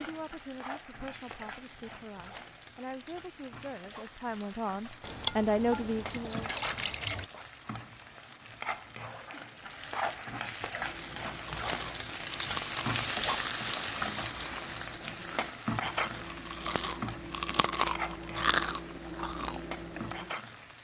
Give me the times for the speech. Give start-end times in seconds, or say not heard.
0.0-6.5.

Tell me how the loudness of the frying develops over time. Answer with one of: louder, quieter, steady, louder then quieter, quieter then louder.
louder then quieter.